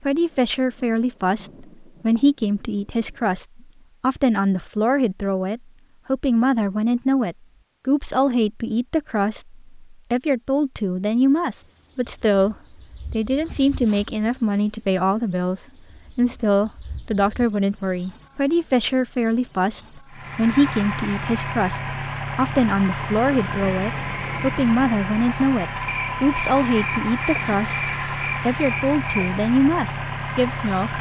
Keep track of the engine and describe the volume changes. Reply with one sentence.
The volume of the engine stays about the same.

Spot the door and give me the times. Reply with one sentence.
The door can't be heard in this clip.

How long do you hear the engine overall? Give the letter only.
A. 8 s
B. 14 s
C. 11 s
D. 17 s
C.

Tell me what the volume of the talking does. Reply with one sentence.
The volume of the talking stays about the same.